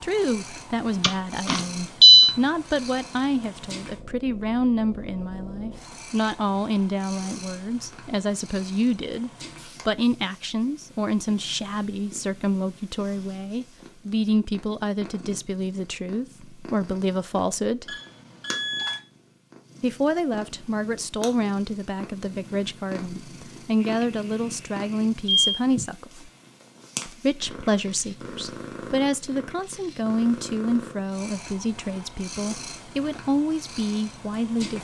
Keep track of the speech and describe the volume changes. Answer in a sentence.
The volume of the speech stays about the same.